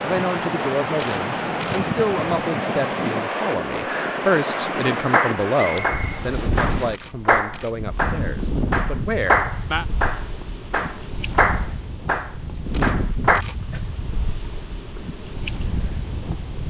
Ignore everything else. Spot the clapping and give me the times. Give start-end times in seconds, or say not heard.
5.1-13.4.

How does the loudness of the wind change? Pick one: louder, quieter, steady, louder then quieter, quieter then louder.
quieter.